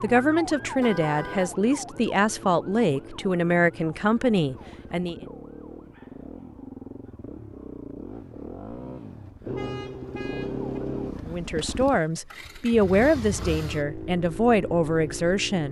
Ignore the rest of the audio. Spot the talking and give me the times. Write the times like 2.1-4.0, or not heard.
0.0-5.2, 11.2-15.6.